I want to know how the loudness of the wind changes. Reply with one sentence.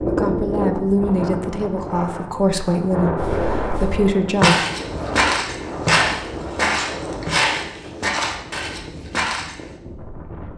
The loudness of the wind goes down.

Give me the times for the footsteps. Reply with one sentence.
The footsteps can be heard from 3.1 to 9.7 s.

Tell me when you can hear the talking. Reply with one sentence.
You can hear the talking from 0.0 to 4.7 s.